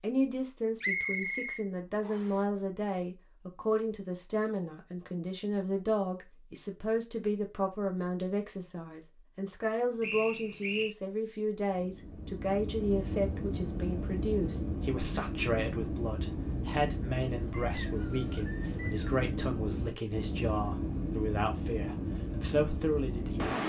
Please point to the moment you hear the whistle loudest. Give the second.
1 s.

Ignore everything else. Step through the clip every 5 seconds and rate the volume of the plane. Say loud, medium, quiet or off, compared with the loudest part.
off, off, loud, loud, loud.